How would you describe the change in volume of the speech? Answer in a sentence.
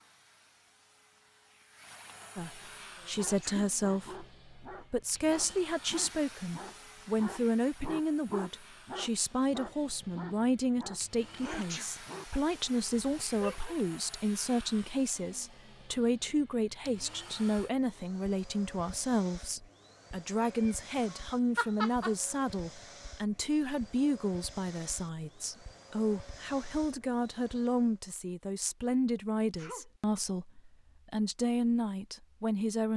The loudness of the speech stays about the same.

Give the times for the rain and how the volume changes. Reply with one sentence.
You can't hear the rain here.